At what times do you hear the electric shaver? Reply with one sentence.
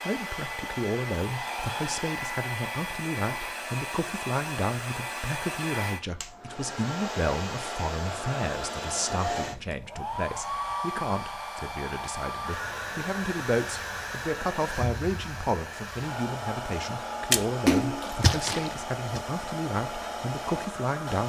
The electric shaver can't be heard in this clip.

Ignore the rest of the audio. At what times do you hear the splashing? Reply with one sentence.
The splashing can be heard from 17.3 to 19.2 s.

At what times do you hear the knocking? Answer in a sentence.
You can't hear the knocking here.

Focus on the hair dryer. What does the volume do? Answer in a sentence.
The volume of the hair dryer stays about the same.